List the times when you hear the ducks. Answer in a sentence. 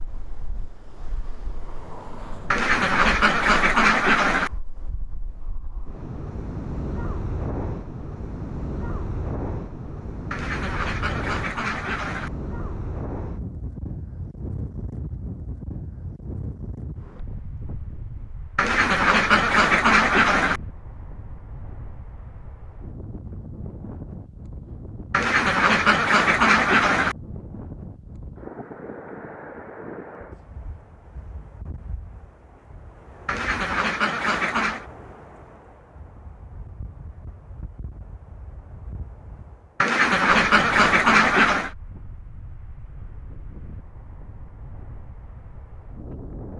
The ducks can be heard from 2.5 to 4.5 s, from 10.3 to 12.3 s, from 18.6 to 20.6 s, from 25.1 to 27.1 s, from 33.2 to 34.9 s and from 39.8 to 41.7 s.